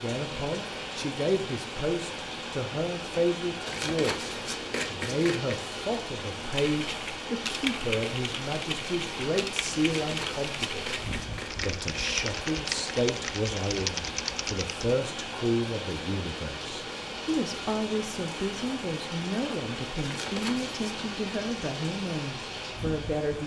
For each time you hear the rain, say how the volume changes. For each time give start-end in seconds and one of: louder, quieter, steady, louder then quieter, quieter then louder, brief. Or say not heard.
0.0-23.4 steady.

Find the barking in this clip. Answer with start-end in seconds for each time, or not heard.
not heard.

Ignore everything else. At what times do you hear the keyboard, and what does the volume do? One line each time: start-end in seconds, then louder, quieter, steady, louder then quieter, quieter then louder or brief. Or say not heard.
6.5-14.9 steady.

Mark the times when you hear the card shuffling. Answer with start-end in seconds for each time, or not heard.
3.6-5.5, 9.8-11.7, 20.0-20.8.